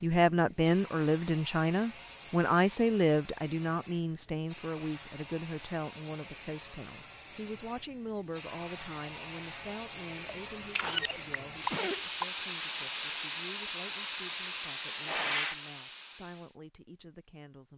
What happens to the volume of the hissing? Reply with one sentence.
The volume of the hissing goes up.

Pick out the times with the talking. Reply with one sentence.
You can hear the talking from 0.0 to 17.7 s.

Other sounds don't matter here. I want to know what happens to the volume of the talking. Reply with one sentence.
The loudness of the talking goes down.